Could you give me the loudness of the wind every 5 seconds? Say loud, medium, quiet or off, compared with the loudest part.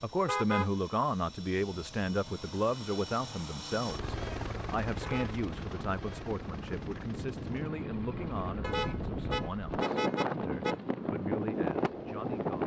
off, medium, loud.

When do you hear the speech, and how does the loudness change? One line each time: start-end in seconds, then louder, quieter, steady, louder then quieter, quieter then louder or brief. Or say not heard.
0.0-12.6 quieter.